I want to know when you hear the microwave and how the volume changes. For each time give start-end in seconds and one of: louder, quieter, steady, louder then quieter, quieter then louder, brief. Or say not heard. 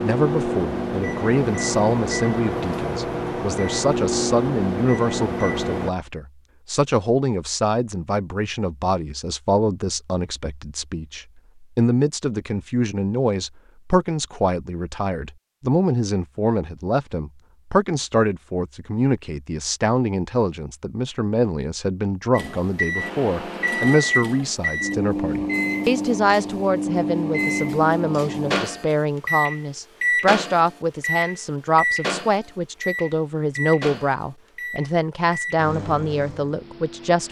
0.0-5.9 steady
22.3-37.2 quieter.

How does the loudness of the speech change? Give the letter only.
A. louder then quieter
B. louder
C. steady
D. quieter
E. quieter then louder
C.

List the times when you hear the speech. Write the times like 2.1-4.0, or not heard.
0.0-37.2.